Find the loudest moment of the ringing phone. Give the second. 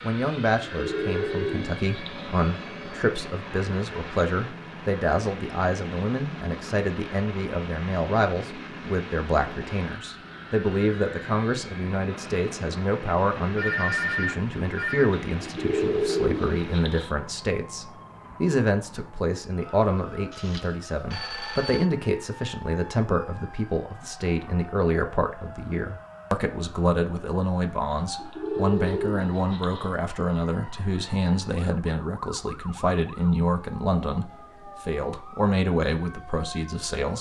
14 s.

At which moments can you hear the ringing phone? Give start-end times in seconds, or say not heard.
13.6-15.1, 20.3-21.9.